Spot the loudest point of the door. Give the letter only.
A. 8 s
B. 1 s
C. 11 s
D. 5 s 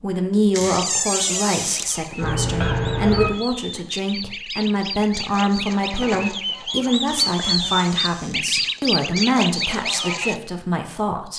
B.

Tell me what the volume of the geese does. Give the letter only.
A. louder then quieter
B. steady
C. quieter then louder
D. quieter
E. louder
E.